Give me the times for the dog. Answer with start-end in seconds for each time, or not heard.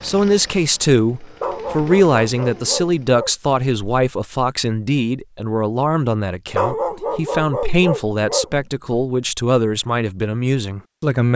1.4-3.3, 6.5-8.9.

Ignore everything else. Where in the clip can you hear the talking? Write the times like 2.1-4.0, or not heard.
0.0-11.3.